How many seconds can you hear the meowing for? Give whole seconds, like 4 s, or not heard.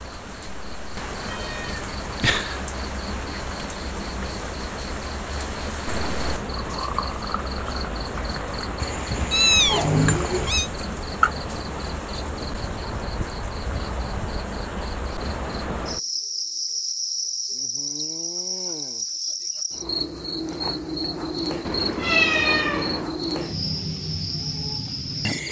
5 s.